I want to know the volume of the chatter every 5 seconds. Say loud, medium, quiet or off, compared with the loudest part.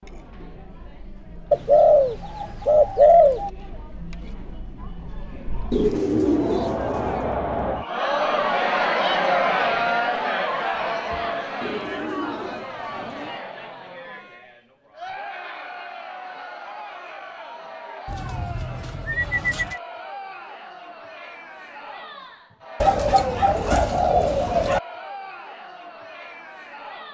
quiet, loud, medium, quiet, quiet, quiet.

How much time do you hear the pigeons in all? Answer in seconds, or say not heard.
9 s.